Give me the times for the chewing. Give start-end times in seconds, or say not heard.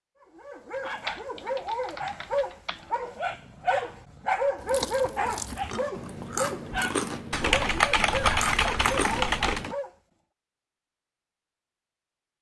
4.5-9.8.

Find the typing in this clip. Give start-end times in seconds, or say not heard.
1.1-3.0, 7.3-9.7.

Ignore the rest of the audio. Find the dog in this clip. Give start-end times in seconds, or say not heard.
0.2-9.9.